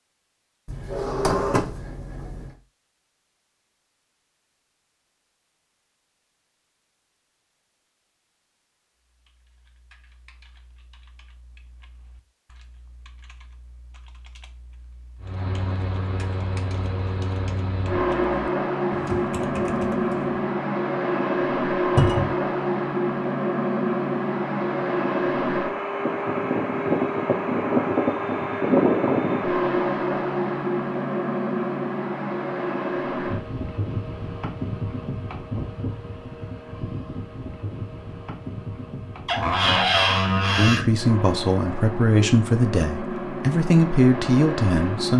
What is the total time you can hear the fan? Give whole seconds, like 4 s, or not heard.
30 s.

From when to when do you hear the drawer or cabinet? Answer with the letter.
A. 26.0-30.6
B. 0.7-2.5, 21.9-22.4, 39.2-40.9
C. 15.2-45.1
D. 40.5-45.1
B.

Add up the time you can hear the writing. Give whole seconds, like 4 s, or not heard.
not heard.